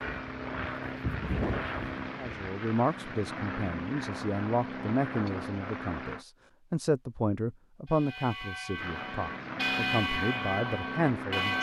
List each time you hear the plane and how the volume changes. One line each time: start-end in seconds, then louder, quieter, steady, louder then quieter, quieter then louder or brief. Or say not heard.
0.0-6.2 steady
8.8-11.5 brief.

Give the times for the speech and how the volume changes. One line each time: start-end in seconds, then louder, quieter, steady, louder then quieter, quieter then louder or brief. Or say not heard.
2.1-11.5 steady.